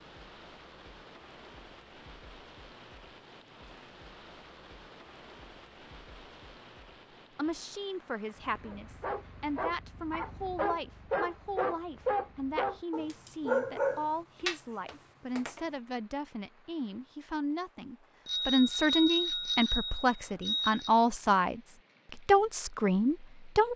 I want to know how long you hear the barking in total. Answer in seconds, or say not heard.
7 s.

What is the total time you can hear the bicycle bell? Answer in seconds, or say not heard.
3 s.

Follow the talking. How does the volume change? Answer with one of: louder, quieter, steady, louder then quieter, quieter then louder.
louder.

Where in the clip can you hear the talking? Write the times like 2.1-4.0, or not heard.
7.3-23.7.